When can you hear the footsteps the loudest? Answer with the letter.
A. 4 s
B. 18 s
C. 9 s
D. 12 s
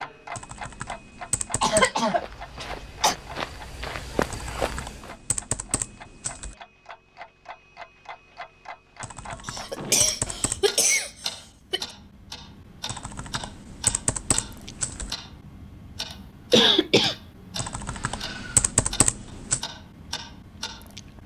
A.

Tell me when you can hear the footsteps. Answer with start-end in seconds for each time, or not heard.
2.0-5.2.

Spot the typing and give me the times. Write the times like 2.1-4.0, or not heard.
0.3-1.9, 4.3-6.5, 9.0-10.7, 12.8-15.2, 17.6-19.6.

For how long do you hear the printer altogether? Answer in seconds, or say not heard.
not heard.